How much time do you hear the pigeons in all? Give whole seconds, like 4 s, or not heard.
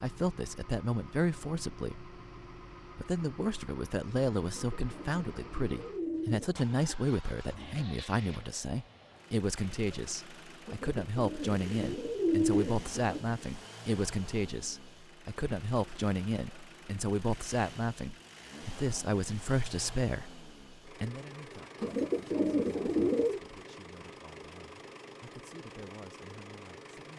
7 s.